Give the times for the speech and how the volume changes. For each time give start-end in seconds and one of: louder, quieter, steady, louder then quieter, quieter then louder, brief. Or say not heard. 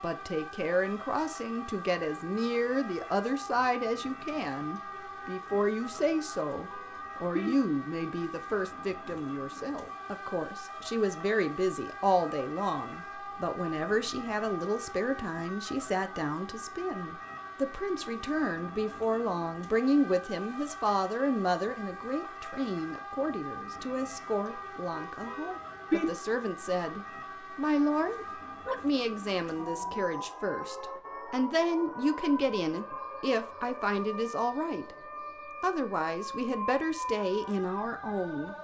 0.0-35.0 steady
35.6-38.5 brief.